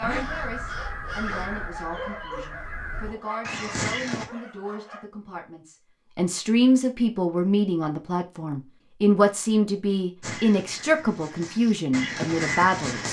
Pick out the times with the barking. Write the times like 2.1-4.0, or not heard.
0.1-5.0.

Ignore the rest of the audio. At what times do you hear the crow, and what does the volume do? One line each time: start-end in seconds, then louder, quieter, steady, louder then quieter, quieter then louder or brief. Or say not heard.
0.0-4.2 quieter then louder
10.2-13.0 brief.